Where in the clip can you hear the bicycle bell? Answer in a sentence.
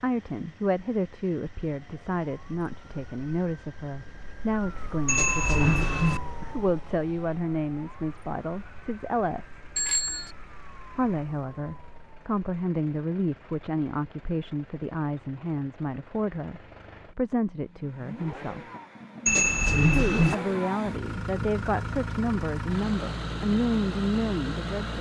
The bicycle bell can be heard from 5.0 to 6.2 s, from 9.8 to 10.3 s and from 19.2 to 20.4 s.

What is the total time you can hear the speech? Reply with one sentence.
The speech can be heard for 22 seconds in total.